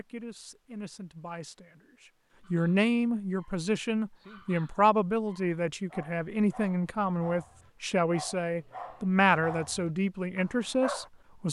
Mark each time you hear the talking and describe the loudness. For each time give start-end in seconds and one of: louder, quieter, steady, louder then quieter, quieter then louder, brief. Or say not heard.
0.0-11.4 louder.